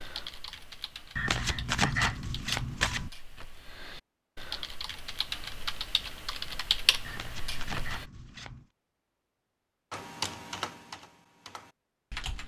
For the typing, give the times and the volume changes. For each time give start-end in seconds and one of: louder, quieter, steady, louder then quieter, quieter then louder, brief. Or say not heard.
0.0-8.1 louder
9.9-12.4 brief.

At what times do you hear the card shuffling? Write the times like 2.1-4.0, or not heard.
1.1-3.1, 7.0-8.7.